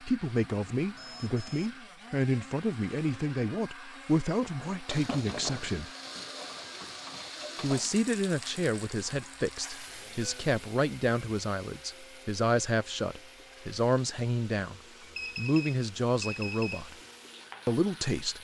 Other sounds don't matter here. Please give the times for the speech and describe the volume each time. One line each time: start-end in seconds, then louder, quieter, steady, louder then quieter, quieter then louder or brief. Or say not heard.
0.0-5.9 steady
7.6-16.9 steady
17.6-18.3 brief.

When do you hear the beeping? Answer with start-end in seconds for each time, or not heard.
0.8-1.8, 9.8-10.4, 15.2-16.9.